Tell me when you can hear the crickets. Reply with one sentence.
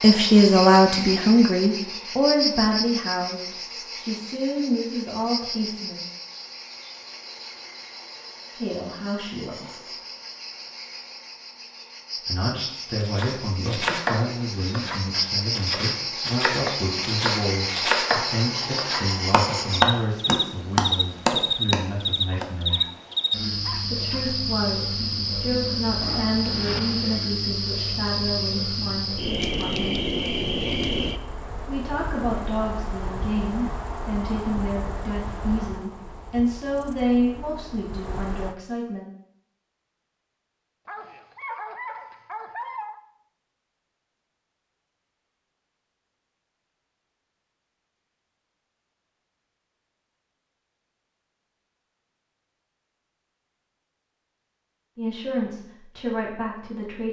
You can hear the crickets from 0.0 to 38.5 s.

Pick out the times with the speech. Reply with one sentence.
You can hear the speech from 0.0 to 6.0 s, from 8.5 to 9.9 s, from 12.2 to 22.9 s, from 23.8 to 30.1 s, from 31.6 to 39.0 s and from 55.0 to 57.0 s.